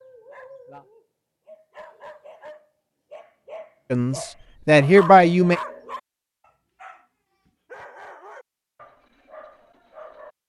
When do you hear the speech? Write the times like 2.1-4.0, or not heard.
3.9-5.6.